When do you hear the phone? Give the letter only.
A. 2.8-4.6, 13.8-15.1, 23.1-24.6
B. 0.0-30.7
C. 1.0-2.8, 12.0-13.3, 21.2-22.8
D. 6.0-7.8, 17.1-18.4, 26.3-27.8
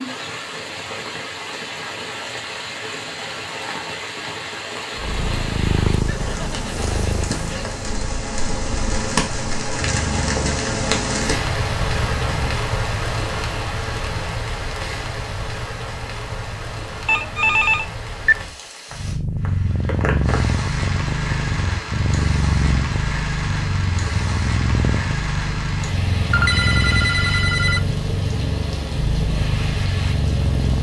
D.